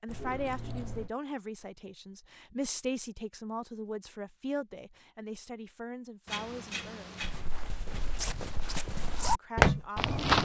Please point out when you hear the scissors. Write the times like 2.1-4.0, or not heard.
0.1-1.1, 6.2-7.4.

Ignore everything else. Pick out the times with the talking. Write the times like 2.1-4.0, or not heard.
0.0-7.2, 9.2-10.2.